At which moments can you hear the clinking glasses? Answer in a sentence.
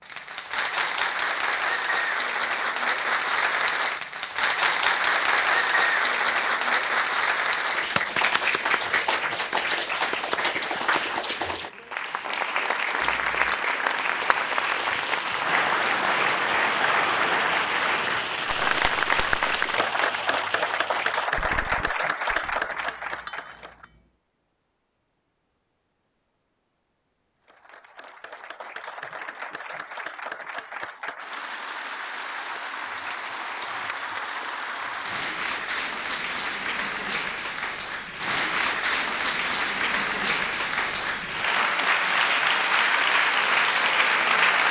You can hear the clinking glasses from 13.0 to 13.7 s and from 22.8 to 24.1 s.